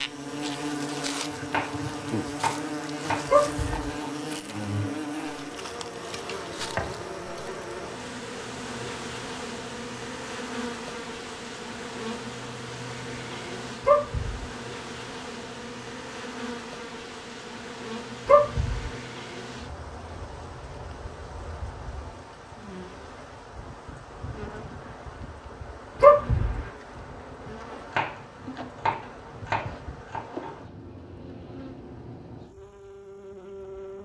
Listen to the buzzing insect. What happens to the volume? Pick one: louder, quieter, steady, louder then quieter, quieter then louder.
quieter.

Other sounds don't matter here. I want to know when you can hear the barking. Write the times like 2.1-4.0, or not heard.
3.2-4.0, 13.8-14.5, 18.2-18.9, 26.0-26.6.